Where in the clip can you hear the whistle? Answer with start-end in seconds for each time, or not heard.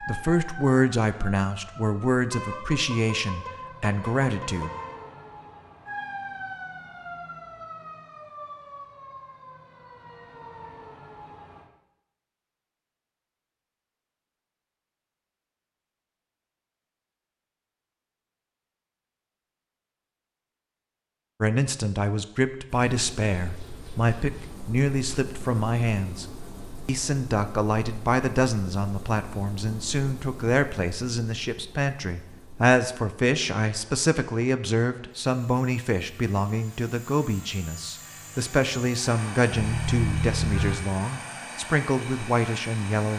not heard.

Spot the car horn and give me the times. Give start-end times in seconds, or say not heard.
2.3-5.0, 39.5-40.9.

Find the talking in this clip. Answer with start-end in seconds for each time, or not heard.
0.0-4.7, 21.4-26.2, 26.9-43.1.